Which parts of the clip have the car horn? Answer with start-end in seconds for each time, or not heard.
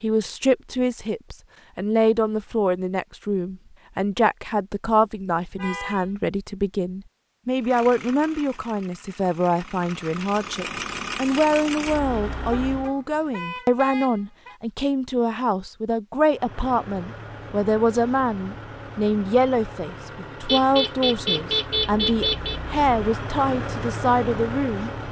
5.5-6.0, 12.4-14.6, 20.4-22.6.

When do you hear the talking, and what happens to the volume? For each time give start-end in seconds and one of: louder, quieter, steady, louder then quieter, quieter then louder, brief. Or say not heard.
0.0-24.9 steady.